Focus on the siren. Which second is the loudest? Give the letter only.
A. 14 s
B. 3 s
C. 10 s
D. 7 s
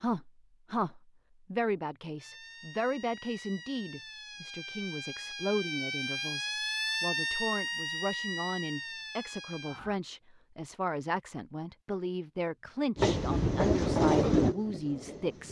D.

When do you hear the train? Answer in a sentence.
You can hear the train from 12.9 to 15.4 s.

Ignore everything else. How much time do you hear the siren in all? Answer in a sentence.
The siren can be heard for 8 seconds in total.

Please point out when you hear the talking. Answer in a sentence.
You can hear the talking from 0.0 to 15.4 s.